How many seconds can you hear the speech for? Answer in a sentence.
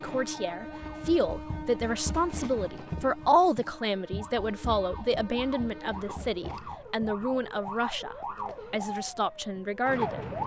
You can hear the speech for 10 seconds altogether.